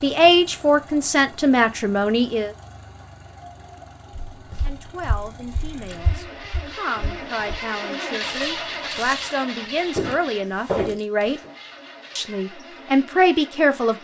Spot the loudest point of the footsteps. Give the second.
11 s.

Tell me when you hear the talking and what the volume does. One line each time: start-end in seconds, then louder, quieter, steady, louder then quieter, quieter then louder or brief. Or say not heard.
0.0-2.5 brief
4.6-11.4 louder
12.2-13.9 brief.